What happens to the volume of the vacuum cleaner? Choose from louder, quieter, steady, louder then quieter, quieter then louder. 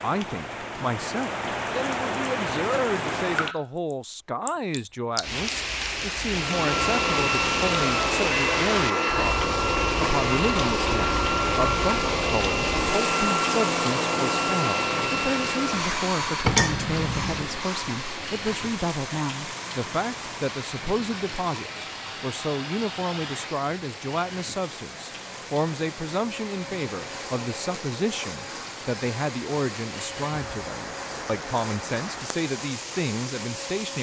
quieter.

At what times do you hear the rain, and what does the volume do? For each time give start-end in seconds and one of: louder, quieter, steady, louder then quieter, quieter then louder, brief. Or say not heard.
0.0-33.9 quieter.